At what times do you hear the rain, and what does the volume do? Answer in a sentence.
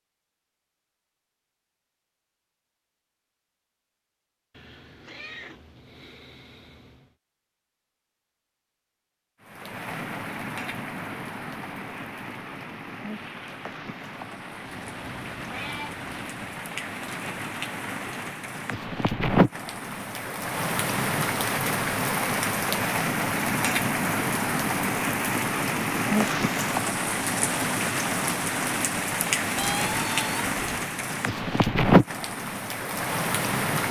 You can hear the rain from 9.4 to 33.8 s, getting louder.